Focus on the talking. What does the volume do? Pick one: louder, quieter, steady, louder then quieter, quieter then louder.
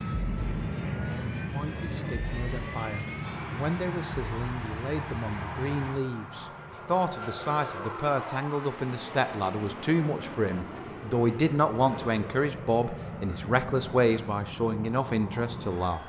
louder.